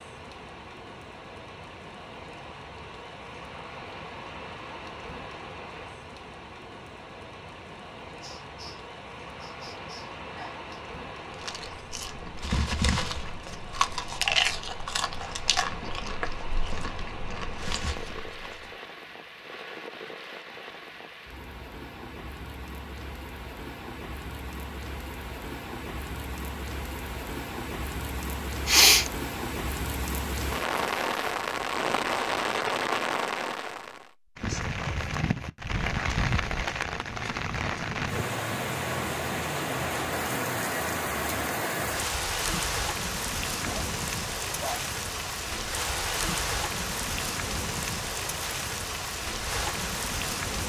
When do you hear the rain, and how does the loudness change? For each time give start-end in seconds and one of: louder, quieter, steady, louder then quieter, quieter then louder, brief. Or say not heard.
0.0-50.6 louder.